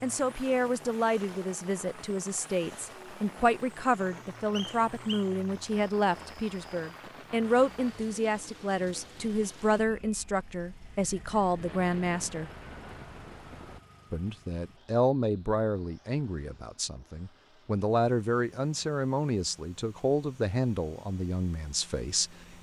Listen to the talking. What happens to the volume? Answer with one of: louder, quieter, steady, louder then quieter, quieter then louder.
steady.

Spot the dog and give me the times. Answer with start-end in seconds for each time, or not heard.
not heard.